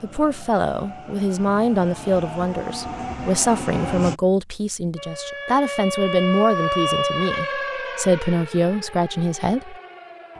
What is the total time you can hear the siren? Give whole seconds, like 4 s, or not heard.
5 s.